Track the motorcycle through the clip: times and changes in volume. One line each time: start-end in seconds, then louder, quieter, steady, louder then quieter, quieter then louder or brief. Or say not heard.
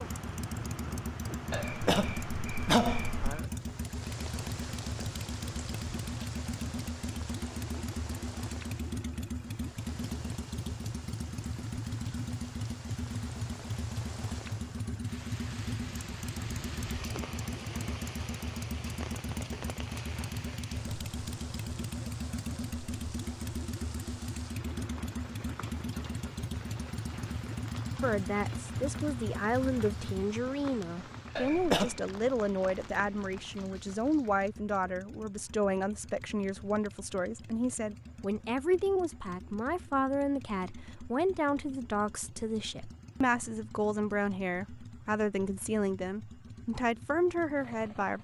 0.0-48.1 quieter.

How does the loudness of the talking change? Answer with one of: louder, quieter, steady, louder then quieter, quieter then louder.
steady.